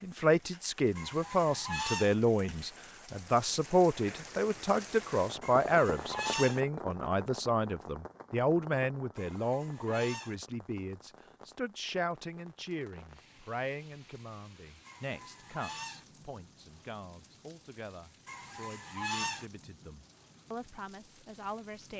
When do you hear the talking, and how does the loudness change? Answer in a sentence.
The talking can be heard from 0.0 to 21.9 s, getting quieter.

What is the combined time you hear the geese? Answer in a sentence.
The geese can be heard for 6 seconds in total.